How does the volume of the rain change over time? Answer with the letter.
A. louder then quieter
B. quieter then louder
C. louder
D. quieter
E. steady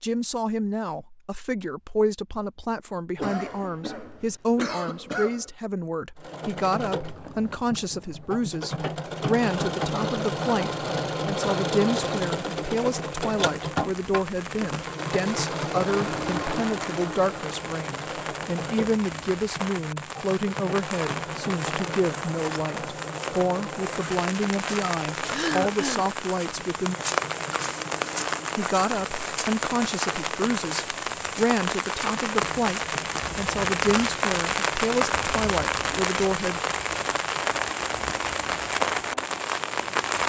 C.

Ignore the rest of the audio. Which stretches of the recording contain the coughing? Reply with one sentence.
You can hear the coughing from 3.1 to 5.5 s and from 25.3 to 26.1 s.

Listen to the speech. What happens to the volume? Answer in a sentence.
The volume of the speech stays about the same.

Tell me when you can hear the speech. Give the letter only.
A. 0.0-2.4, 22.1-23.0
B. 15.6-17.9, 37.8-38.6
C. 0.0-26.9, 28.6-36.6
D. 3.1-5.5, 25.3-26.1
C.